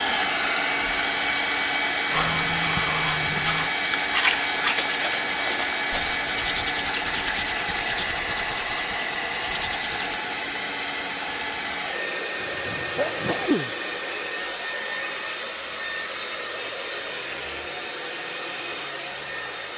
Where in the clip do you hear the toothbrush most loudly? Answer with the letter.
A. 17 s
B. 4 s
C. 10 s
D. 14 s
B.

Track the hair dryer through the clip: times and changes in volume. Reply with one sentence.
You can hear the hair dryer from 0.0 to 19.7 s, getting quieter.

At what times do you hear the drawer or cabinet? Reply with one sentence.
The drawer or cabinet can't be heard in this clip.